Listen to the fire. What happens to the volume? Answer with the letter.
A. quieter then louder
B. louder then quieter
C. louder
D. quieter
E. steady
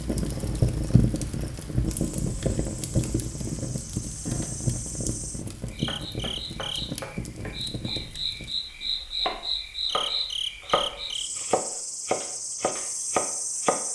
D.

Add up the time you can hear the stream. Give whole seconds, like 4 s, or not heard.
not heard.